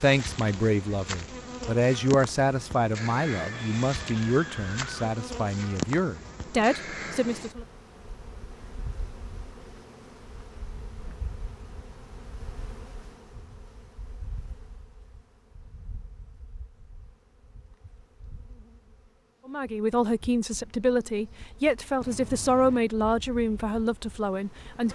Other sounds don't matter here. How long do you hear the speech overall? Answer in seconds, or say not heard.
13 s.